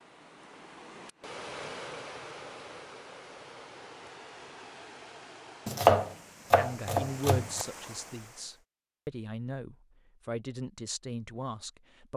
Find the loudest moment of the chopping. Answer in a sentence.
The loudest moment of the chopping is at 6 seconds.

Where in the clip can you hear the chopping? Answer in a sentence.
The chopping can be heard from 5.7 to 7.7 s.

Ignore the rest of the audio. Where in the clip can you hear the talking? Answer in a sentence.
The talking can be heard from 6.5 to 12.1 s.